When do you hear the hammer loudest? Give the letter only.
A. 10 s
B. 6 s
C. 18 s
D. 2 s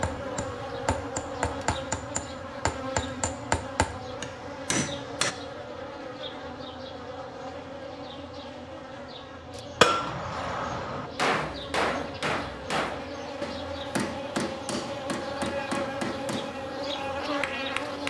A.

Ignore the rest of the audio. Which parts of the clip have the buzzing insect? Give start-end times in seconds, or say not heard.
0.0-18.0.